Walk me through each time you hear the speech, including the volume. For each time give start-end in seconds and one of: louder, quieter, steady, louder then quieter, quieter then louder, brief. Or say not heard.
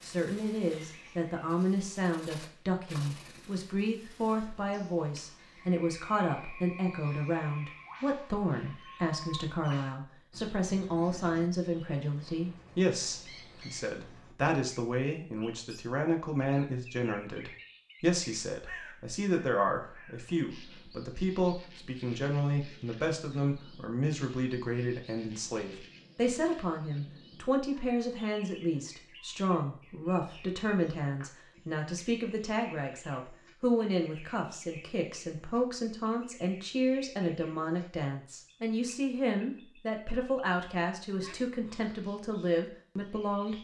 0.0-43.6 steady.